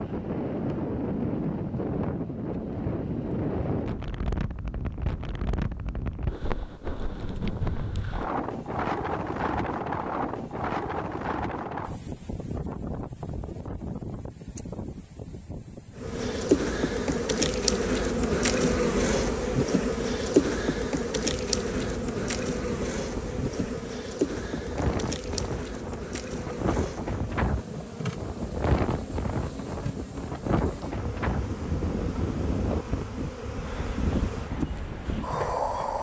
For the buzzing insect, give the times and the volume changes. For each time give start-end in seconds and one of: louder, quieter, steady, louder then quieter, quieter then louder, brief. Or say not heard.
15.9-35.9 quieter.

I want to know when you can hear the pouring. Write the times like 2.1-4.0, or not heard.
not heard.